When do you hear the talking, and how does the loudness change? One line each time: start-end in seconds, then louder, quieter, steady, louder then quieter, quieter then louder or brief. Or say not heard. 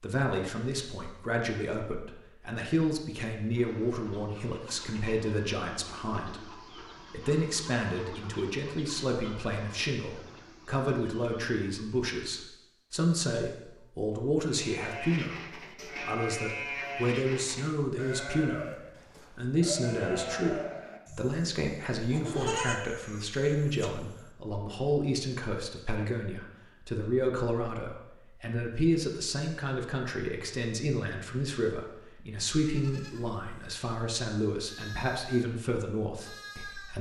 0.0-36.9 steady.